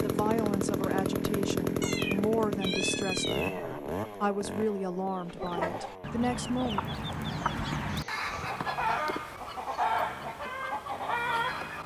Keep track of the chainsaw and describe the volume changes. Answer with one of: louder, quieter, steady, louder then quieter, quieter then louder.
quieter.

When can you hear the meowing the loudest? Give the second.
3 s.